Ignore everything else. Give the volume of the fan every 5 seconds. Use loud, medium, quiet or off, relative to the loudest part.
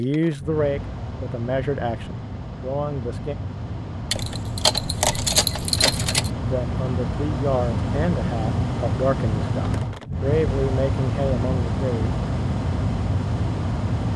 medium, loud, loud.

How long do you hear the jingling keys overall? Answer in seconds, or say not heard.
2 s.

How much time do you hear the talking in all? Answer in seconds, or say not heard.
9 s.